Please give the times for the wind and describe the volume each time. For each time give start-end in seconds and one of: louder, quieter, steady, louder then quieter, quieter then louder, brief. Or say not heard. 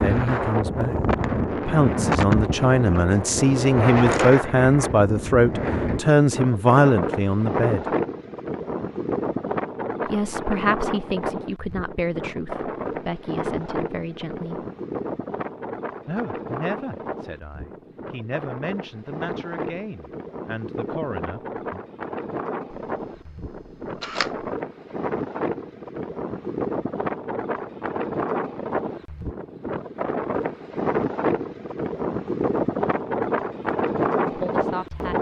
0.0-35.1 quieter then louder.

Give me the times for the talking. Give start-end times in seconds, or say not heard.
0.0-1.0, 1.6-7.8, 10.1-14.7, 16.1-21.9, 34.2-35.1.